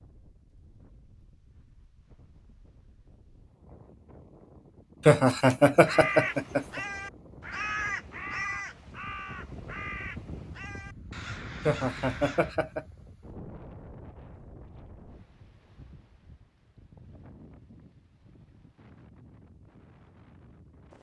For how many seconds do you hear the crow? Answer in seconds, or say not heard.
7 s.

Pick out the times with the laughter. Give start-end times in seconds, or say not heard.
5.0-6.8, 11.7-12.8.